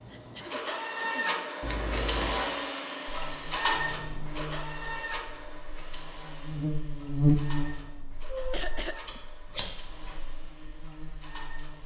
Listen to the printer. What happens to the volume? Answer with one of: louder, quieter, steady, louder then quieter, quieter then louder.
quieter.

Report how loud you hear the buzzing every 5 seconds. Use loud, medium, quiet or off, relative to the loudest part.
quiet, loud, quiet.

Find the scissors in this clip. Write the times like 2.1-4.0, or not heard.
1.6-2.5, 9.1-10.2.